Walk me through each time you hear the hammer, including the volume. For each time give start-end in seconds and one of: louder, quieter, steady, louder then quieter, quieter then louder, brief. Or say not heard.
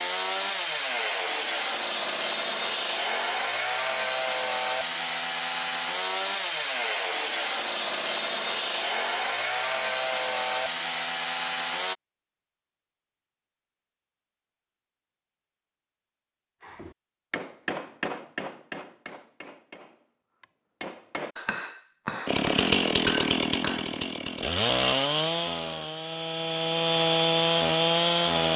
16.6-23.9 quieter then louder.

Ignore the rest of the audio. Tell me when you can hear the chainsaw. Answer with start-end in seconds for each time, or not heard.
0.0-11.9, 22.2-28.5.